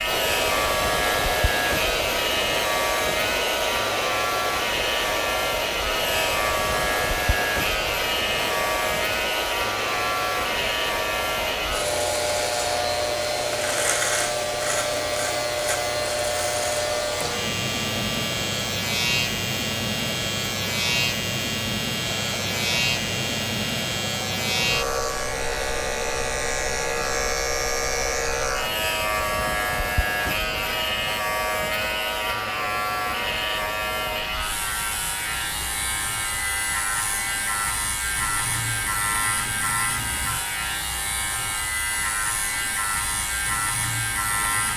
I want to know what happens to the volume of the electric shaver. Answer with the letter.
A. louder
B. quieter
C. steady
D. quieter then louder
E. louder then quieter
C.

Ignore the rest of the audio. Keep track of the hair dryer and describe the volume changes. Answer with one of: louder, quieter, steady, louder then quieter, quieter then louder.
quieter.